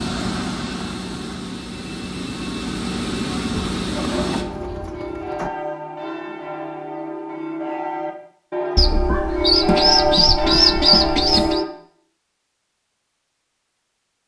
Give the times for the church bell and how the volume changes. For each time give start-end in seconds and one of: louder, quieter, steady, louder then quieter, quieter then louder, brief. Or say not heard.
4.0-11.7 louder.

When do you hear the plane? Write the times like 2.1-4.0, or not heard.
0.0-4.5.